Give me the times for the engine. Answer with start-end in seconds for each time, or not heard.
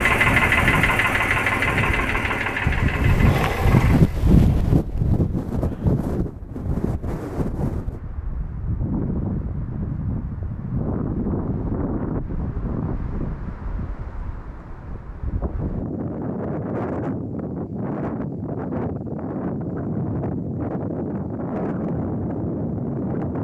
0.0-4.2.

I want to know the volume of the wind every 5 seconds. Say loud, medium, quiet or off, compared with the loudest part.
loud, medium, medium, medium, medium.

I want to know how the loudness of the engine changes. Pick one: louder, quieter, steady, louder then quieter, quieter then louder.
quieter.